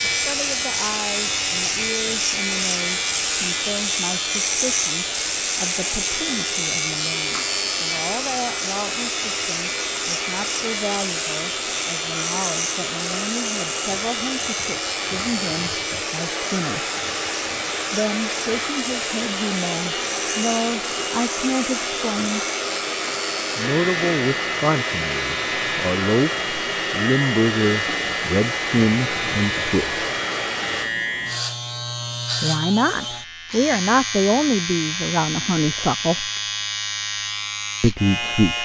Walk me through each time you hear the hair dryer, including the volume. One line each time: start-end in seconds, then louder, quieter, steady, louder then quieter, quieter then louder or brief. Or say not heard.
0.0-30.9 louder.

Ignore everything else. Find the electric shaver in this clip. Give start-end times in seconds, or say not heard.
0.0-38.6.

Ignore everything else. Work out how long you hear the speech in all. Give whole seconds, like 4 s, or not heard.
32 s.